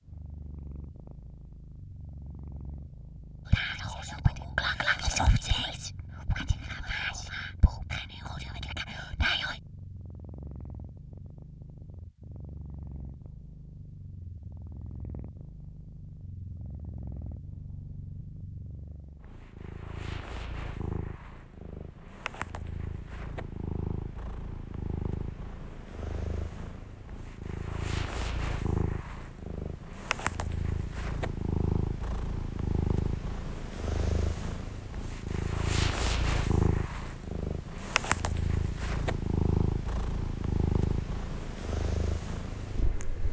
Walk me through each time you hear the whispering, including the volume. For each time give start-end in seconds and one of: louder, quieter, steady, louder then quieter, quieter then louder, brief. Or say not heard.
3.5-9.6 quieter.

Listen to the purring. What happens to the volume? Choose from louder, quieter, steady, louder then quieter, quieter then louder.
louder.